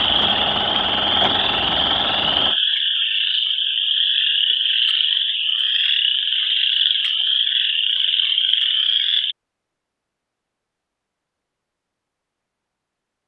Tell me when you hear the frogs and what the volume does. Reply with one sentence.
The frogs can be heard from 0.0 to 9.3 s, at a steady volume.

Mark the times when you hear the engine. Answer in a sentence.
You can hear the engine from 0.0 to 2.6 s.